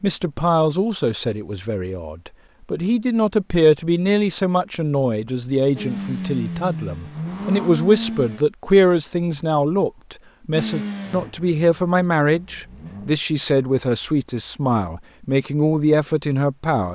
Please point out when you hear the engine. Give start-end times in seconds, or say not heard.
5.8-8.4, 10.5-13.2.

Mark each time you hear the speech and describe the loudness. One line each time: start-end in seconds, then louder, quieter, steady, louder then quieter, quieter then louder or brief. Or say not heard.
0.0-16.8 steady.